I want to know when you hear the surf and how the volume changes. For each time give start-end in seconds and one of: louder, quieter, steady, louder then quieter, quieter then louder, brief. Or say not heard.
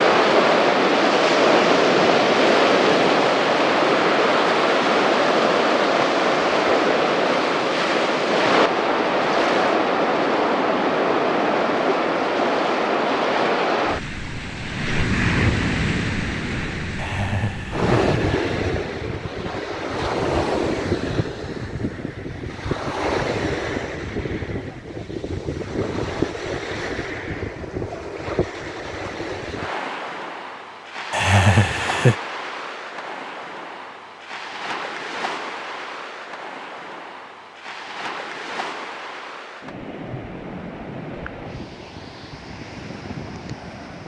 0.0-44.0 quieter.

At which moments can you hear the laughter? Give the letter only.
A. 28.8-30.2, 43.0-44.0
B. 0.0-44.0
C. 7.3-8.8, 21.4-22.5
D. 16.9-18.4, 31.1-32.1
D.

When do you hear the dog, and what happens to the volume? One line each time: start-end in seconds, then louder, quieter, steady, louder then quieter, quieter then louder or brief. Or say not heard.
not heard.